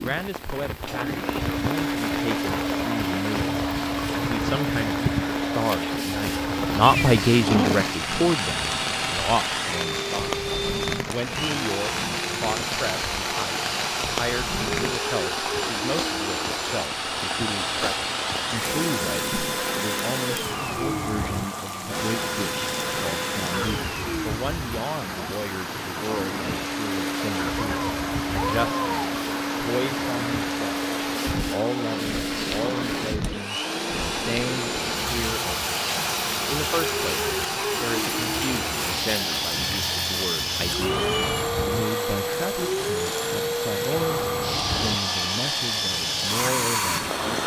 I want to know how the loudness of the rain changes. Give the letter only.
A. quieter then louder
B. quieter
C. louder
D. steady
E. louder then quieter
D.